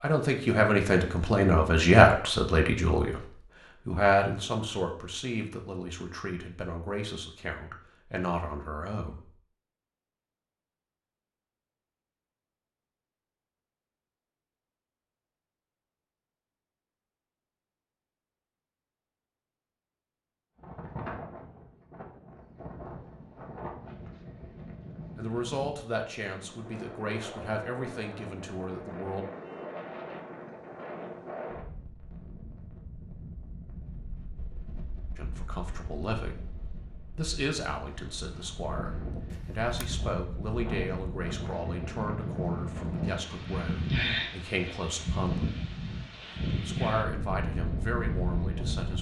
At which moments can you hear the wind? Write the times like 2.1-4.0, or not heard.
20.6-48.9.